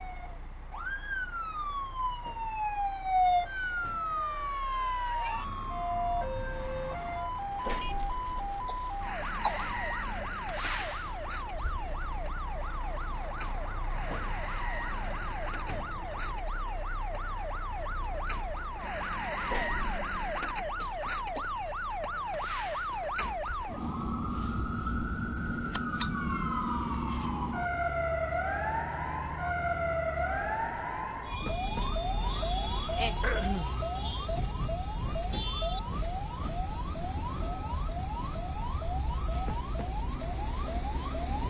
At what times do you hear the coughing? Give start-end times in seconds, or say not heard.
8.7-9.8, 20.8-21.4, 33.2-33.8.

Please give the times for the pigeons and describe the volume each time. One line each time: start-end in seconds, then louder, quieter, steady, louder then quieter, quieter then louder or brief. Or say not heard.
not heard.